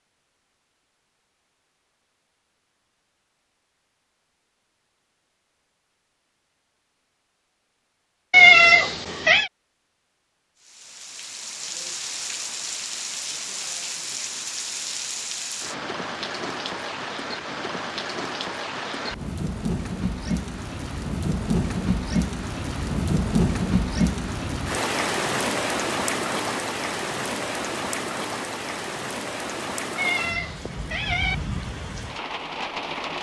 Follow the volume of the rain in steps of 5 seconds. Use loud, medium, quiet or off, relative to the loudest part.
off, off, medium, medium, loud, loud, medium.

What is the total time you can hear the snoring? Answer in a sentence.
The snoring can't be heard in this clip.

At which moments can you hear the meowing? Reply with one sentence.
The meowing can be heard from 8.3 to 9.5 s and from 29.9 to 31.4 s.